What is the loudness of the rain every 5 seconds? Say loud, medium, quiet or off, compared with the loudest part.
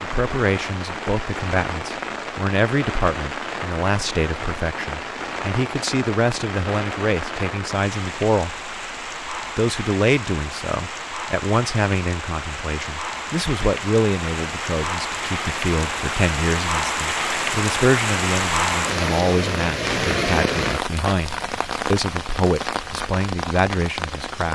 medium, medium, medium, loud, loud.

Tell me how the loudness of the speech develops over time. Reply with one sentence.
The volume of the speech stays about the same.